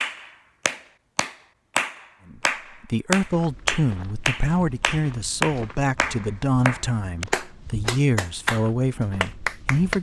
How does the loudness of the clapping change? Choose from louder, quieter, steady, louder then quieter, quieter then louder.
steady.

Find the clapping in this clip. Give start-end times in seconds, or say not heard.
0.0-9.9.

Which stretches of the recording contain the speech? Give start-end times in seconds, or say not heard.
2.2-9.9.